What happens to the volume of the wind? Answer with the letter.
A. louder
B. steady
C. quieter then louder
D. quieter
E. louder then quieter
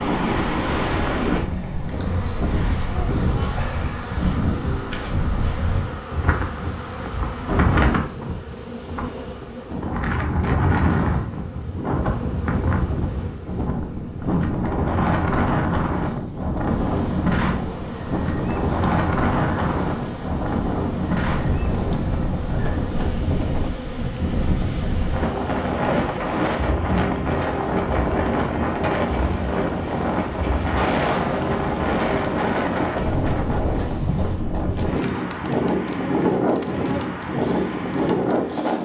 B.